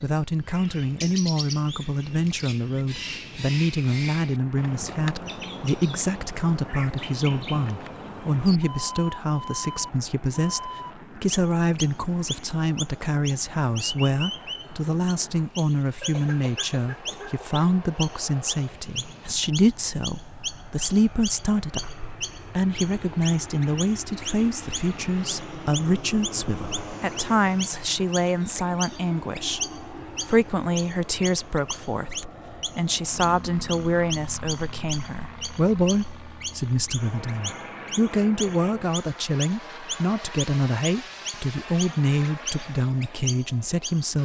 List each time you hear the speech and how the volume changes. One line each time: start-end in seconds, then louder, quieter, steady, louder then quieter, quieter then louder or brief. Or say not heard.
0.0-44.2 steady.